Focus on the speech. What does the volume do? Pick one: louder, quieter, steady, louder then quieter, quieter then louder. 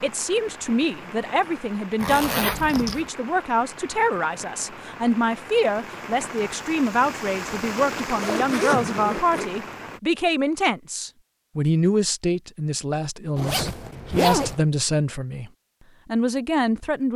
steady.